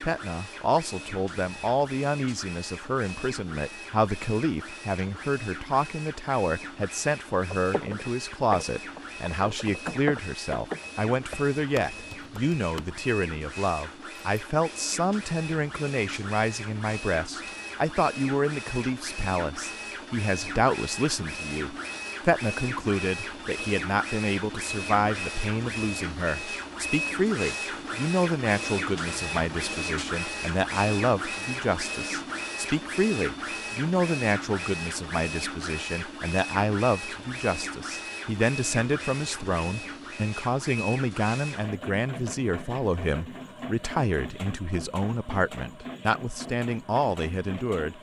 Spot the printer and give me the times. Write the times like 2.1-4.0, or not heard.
0.0-47.9.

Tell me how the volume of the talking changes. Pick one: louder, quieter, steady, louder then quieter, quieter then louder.
steady.